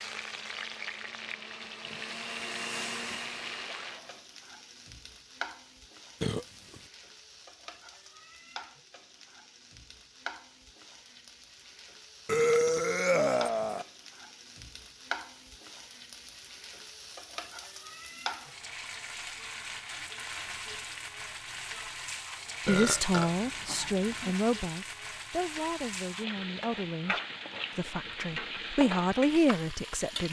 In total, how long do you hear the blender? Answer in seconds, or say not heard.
4 s.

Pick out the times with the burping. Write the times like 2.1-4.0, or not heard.
6.2-6.8, 12.2-13.8, 22.6-24.4.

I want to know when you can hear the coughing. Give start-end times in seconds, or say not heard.
not heard.